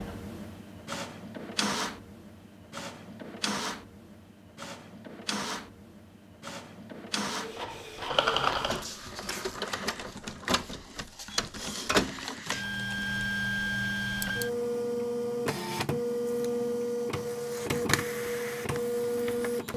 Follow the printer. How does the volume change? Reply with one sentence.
The volume of the printer goes up.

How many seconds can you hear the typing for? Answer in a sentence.
The typing can be heard for 5 seconds in total.